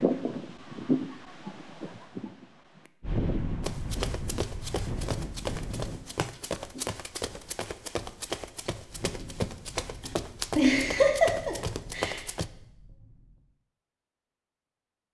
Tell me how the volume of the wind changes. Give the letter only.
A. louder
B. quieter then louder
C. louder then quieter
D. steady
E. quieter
E.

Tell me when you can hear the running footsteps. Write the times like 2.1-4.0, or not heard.
3.6-12.5.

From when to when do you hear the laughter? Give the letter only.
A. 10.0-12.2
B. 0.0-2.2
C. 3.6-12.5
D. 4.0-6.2
A.